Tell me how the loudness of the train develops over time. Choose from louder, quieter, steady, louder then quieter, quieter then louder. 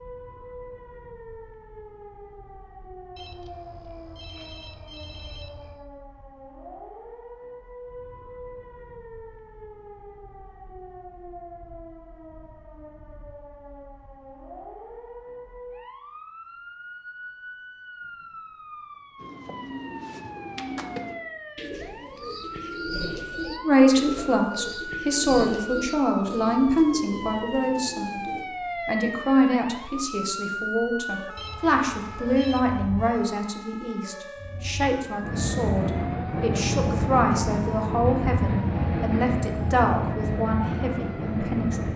steady.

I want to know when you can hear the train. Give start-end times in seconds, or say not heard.
35.2-41.9.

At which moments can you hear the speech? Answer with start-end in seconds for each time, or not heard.
23.6-28.2, 28.9-41.9.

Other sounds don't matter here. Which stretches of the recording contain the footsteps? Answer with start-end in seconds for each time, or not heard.
not heard.